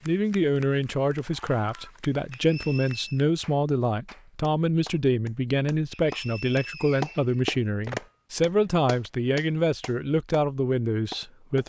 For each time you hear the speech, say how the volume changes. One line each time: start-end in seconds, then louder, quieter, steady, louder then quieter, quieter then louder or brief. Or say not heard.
0.1-11.6 steady.